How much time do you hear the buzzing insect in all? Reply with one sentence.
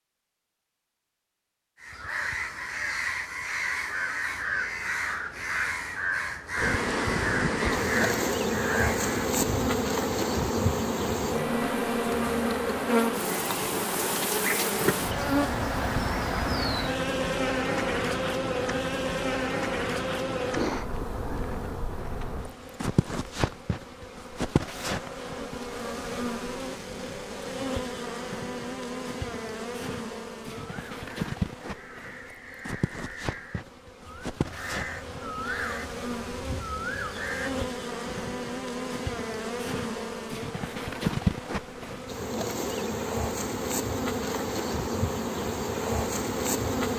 You can hear the buzzing insect for 40 seconds altogether.